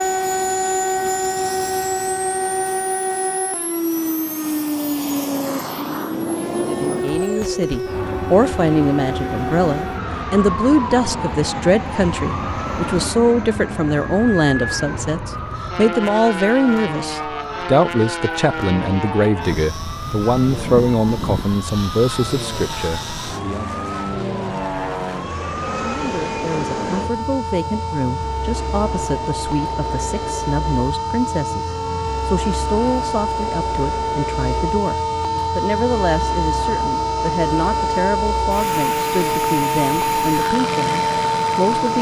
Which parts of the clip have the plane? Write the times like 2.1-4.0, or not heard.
0.0-41.9.